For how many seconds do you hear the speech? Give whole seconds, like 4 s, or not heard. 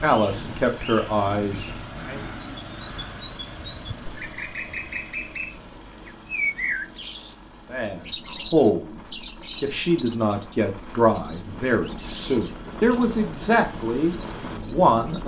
9 s.